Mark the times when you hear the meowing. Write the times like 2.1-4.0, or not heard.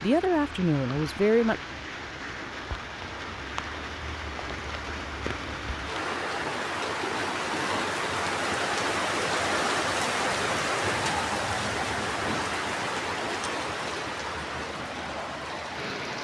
not heard.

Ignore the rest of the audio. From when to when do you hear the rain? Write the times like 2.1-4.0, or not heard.
0.0-16.1.